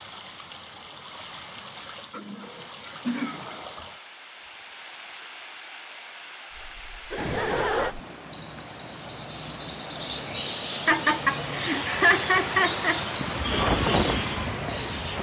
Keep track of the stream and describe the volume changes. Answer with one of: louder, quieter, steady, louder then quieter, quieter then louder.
louder.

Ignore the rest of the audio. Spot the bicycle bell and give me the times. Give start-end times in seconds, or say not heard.
not heard.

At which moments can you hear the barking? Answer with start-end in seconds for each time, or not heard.
not heard.